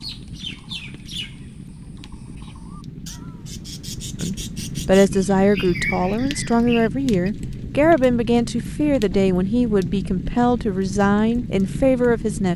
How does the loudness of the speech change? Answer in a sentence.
The loudness of the speech stays about the same.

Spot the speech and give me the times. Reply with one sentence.
You can hear the speech from 4.2 to 12.5 s.